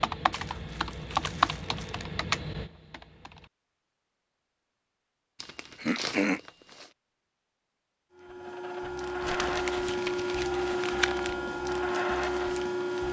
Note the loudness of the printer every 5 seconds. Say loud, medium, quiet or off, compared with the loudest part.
off, loud, loud.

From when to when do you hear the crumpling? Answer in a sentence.
You can hear the crumpling from 0.3 to 2.0 s, from 5.3 to 6.9 s and from 9.2 to 11.3 s.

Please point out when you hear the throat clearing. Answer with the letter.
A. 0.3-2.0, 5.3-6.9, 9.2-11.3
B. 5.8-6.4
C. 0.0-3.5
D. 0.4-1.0
B.